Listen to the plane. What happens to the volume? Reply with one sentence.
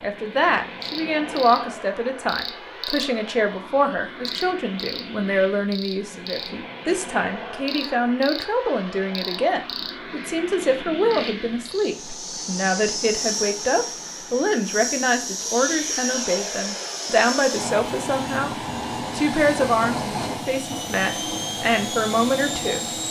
The loudness of the plane goes up.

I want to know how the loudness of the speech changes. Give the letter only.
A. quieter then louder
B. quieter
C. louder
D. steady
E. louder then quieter
D.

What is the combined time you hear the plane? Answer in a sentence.
The plane can be heard for 23 seconds in total.